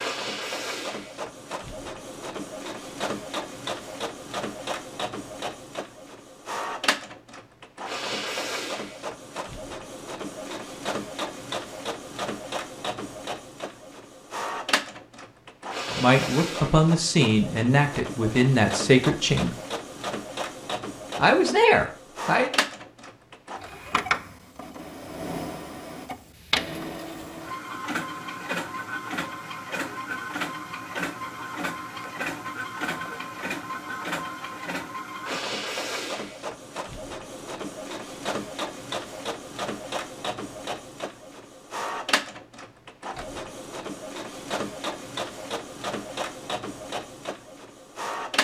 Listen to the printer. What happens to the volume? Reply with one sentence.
The loudness of the printer stays about the same.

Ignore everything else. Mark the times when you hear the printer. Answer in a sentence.
The printer can be heard from 0.0 to 48.4 s.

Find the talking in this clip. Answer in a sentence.
The talking can be heard from 15.9 to 19.6 s and from 21.1 to 22.5 s.